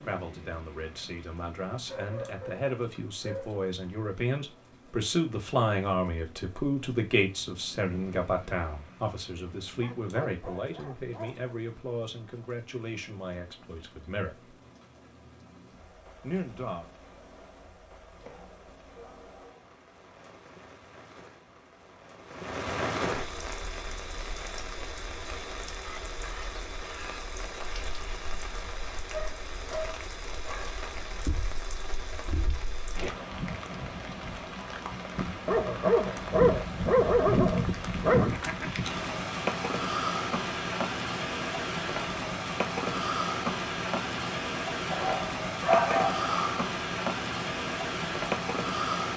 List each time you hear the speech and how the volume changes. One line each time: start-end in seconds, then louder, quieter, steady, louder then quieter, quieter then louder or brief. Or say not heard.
0.0-14.6 louder then quieter
16.2-16.9 brief.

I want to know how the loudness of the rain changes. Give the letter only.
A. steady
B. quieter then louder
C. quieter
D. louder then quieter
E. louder
E.